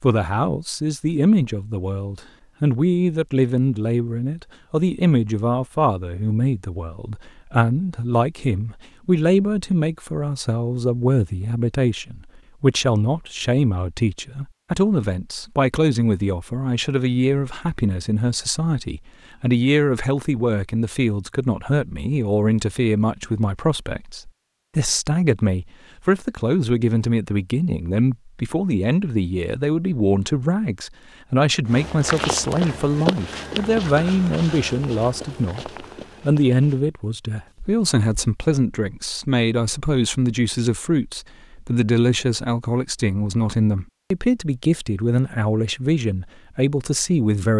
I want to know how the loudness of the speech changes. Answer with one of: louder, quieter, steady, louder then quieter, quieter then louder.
steady.